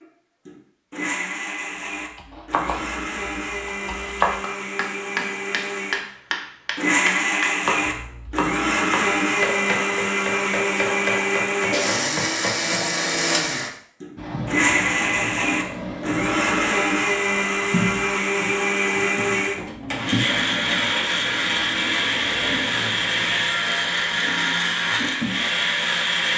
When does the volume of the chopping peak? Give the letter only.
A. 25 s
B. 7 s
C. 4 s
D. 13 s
C.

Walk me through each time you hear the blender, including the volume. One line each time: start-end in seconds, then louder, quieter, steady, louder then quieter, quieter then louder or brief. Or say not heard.
0.0-26.3 louder.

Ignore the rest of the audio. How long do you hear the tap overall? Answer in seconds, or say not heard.
12 s.